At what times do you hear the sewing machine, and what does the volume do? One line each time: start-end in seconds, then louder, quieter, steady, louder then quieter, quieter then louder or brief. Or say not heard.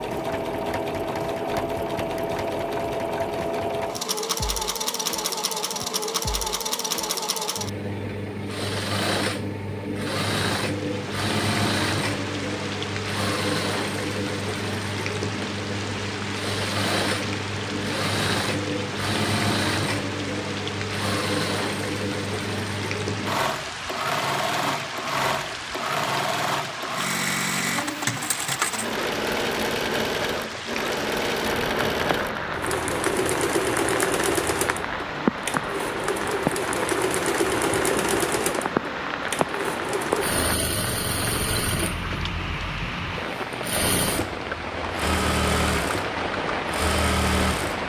0.0-47.8 steady.